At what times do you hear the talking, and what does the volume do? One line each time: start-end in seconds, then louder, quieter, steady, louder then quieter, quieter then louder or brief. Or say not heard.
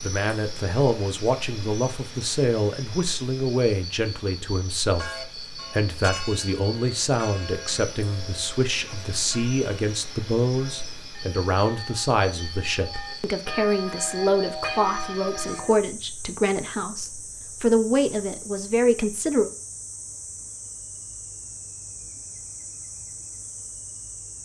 0.0-19.5 steady.